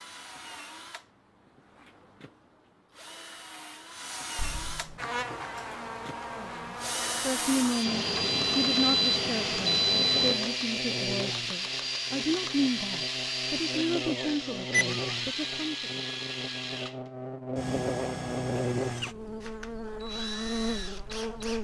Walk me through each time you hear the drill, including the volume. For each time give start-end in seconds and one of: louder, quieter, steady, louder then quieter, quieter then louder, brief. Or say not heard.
0.0-21.5 louder then quieter.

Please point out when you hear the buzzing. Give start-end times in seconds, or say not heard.
5.0-21.5.